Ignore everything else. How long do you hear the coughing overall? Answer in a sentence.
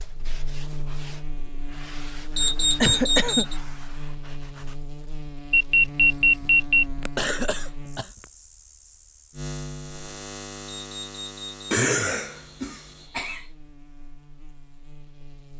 The coughing can be heard for 4 seconds in total.